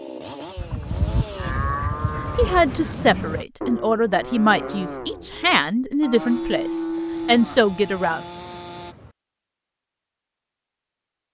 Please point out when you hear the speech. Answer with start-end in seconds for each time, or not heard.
2.4-8.2.